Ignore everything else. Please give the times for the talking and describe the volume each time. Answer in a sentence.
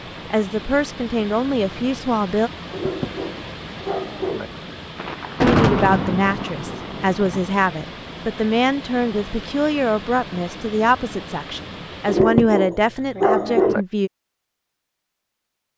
The talking can be heard briefly from 0.3 to 2.5 s; and from 5.4 to 14.1 s, at a steady volume.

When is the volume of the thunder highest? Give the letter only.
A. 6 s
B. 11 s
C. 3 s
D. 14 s
A.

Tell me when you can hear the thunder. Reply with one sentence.
You can hear the thunder from 5.0 to 7.5 s.